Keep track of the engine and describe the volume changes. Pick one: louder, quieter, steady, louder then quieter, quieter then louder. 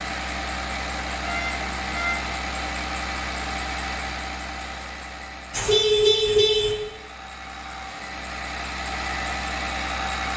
quieter then louder.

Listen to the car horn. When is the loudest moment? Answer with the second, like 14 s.
6 s.